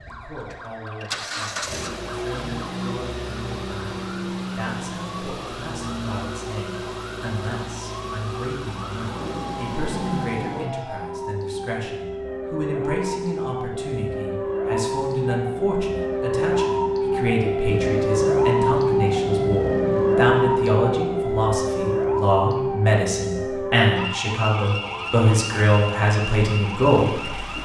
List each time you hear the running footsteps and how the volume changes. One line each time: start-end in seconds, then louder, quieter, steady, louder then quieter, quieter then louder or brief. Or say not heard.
not heard.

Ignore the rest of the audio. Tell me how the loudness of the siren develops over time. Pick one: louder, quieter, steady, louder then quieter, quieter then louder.
louder then quieter.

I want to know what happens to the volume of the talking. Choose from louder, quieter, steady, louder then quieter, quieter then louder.
louder.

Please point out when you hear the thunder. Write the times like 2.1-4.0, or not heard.
8.9-10.7, 17.6-20.8.